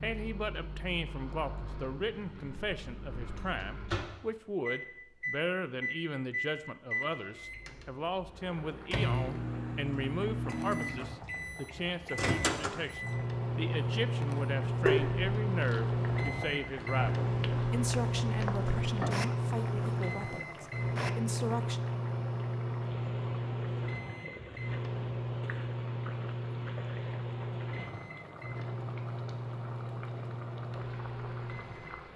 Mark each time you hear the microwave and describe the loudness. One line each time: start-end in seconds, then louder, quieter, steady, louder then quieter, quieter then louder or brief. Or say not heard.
0.0-32.1 louder then quieter.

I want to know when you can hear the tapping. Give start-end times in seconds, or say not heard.
14.8-15.2.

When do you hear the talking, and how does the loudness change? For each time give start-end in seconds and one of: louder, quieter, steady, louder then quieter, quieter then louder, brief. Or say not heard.
0.0-21.8 steady.